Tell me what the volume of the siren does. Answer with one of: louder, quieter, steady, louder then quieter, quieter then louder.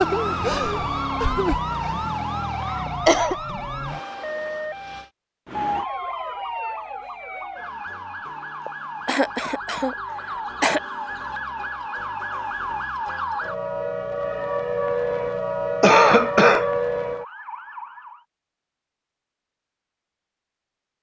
quieter then louder.